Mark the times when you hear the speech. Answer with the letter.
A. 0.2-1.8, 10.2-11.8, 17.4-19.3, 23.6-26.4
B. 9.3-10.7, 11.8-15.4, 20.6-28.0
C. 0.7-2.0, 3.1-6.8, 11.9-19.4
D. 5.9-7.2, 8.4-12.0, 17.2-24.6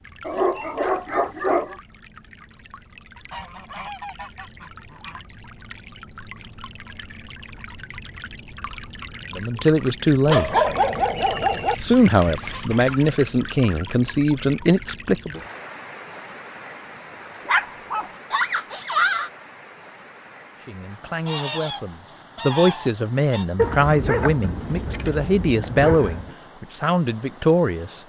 B.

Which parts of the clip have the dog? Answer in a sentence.
You can hear the dog from 0.2 to 1.8 s, from 10.2 to 11.8 s, from 17.4 to 19.3 s and from 23.6 to 26.4 s.